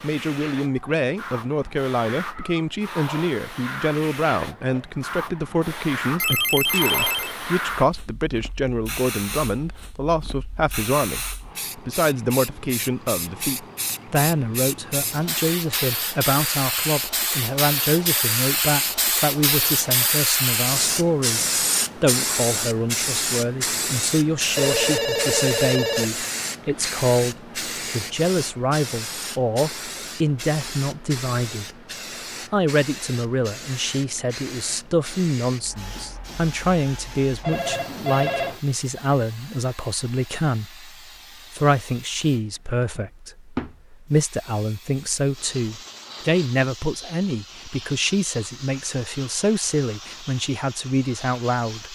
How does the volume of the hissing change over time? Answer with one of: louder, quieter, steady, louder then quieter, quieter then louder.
louder then quieter.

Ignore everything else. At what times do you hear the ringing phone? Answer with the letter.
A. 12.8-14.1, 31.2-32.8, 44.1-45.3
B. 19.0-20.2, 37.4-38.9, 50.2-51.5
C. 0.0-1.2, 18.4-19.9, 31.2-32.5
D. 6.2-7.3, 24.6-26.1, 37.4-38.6
D.